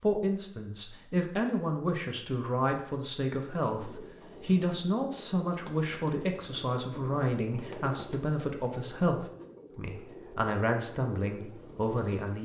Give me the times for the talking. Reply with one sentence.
The talking can be heard from 0.0 to 12.4 s.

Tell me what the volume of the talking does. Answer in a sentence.
The volume of the talking stays about the same.